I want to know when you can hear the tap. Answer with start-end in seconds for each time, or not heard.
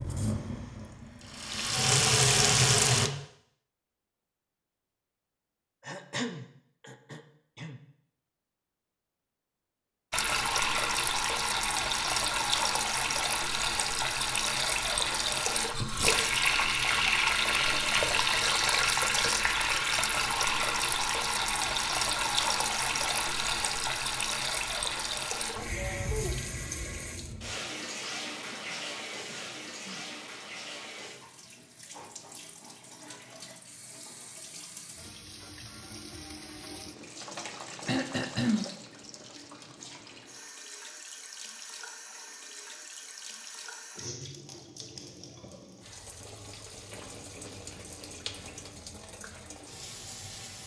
0.0-3.1, 10.1-50.6.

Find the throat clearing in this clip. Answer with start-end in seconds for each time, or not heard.
5.8-7.8, 28.4-30.1, 37.9-38.7.